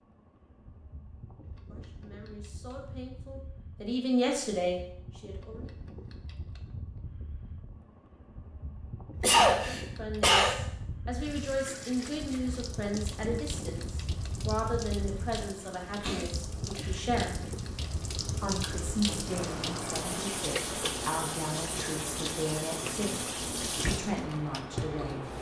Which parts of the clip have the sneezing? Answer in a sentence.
The sneezing can be heard from 9.2 to 10.6 s and from 16.0 to 17.1 s.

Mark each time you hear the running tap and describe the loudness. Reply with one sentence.
You can hear the running tap from 11.2 to 25.3 s, getting louder.